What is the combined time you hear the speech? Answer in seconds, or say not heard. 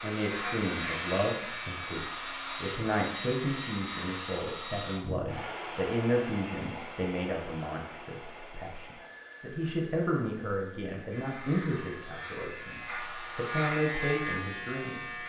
15 s.